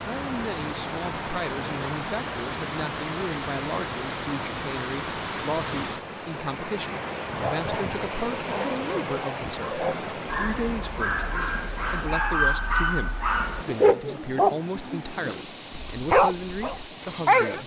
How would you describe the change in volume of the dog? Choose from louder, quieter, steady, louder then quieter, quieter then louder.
louder.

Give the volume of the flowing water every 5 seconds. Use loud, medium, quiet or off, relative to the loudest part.
loud, loud, medium, medium.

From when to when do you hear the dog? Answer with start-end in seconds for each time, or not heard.
7.2-17.6.